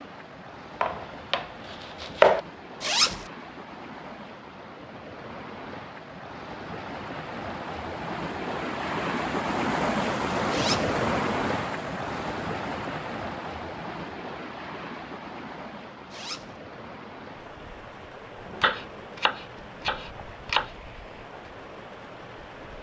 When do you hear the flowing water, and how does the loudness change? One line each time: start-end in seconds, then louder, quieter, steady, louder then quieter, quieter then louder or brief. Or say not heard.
0.0-22.7 louder then quieter.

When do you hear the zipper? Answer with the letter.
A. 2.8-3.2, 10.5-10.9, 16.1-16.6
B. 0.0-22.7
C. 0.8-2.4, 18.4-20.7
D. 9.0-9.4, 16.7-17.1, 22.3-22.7
A.